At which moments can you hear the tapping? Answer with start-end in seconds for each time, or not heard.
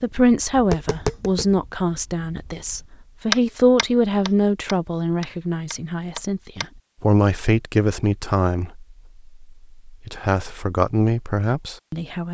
0.0-6.7.